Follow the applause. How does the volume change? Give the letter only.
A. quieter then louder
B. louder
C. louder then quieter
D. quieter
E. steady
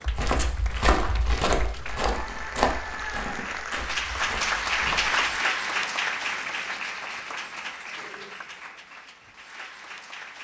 C.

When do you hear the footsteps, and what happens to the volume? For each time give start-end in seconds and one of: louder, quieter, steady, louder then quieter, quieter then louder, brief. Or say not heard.
0.1-5.2 quieter.